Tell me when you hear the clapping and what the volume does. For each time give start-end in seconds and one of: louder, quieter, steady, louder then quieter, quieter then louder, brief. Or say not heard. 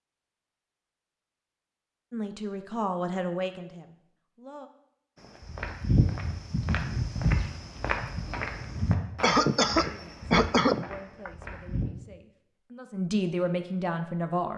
not heard.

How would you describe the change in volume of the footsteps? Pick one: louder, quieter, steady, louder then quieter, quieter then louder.
quieter.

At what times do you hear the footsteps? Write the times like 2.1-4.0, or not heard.
5.2-11.8.